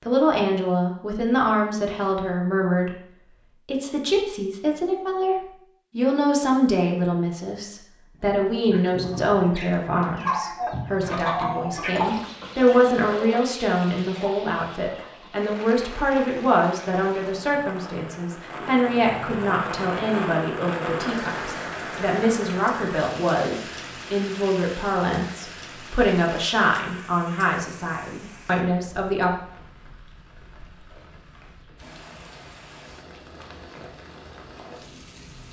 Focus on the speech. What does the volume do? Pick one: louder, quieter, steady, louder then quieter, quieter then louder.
steady.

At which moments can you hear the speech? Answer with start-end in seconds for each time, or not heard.
0.0-29.3.